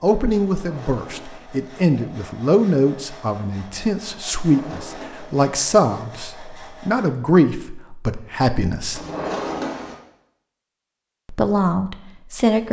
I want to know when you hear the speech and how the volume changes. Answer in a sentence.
You can hear the speech from 0.0 to 9.0 s, at a steady volume; and briefly from 11.2 to 12.6 s.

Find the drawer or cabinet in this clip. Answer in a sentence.
The drawer or cabinet can be heard from 0.5 to 1.7 s, from 4.4 to 5.5 s and from 8.9 to 10.0 s.